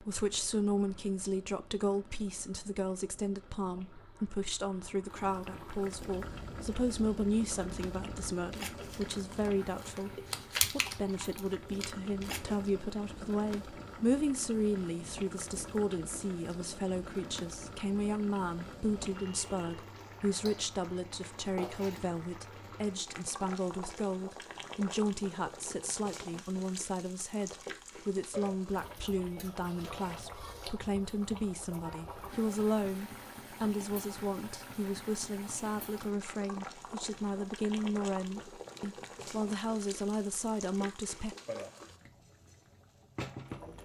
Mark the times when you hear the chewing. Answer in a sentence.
You can hear the chewing from 6.1 to 12.6 s.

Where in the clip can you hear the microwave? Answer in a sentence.
You can't hear the microwave here.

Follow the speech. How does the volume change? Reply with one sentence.
The loudness of the speech stays about the same.